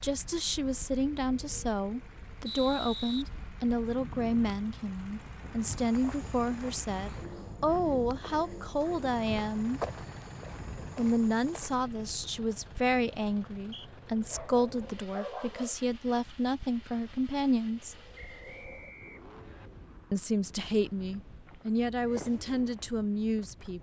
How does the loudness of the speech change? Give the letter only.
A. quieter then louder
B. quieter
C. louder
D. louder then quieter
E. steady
E.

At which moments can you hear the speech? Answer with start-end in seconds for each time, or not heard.
0.0-9.8, 10.9-17.9, 20.1-23.7.